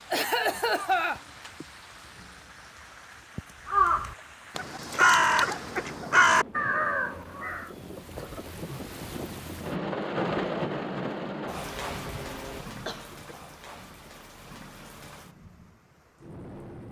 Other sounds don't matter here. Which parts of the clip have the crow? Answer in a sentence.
You can hear the crow from 3.6 to 7.7 s.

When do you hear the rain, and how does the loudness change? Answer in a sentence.
The rain can be heard from 0.0 to 16.8 s, getting louder then quieter.